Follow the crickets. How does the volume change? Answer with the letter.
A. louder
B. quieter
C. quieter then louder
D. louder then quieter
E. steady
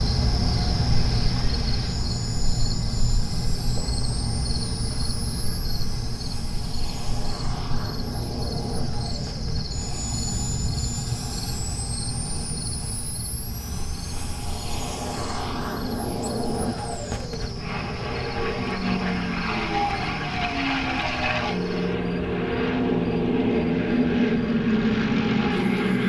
B.